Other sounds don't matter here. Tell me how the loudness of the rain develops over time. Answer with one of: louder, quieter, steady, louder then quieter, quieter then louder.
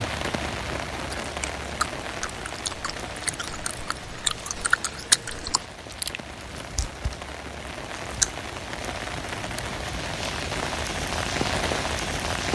quieter then louder.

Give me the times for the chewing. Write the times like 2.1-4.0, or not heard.
1.2-8.4.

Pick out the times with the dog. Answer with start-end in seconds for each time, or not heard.
not heard.